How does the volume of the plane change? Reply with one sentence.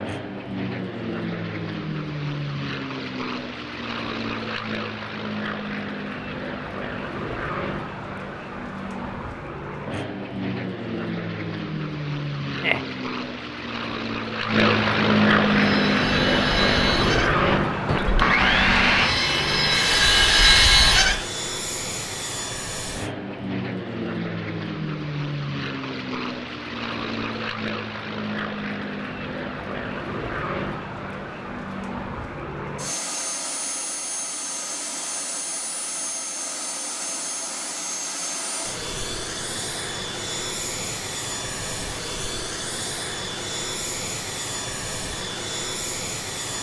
The volume of the plane goes up, then down.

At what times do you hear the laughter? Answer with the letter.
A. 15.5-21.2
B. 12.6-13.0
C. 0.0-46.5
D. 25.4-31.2
B.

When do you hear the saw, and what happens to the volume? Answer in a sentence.
The saw can be heard from 15.5 to 21.2 s, getting louder.